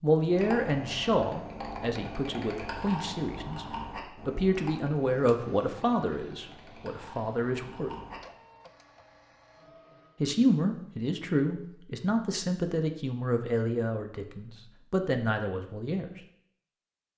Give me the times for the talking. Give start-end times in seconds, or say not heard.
0.0-7.9, 10.2-16.1.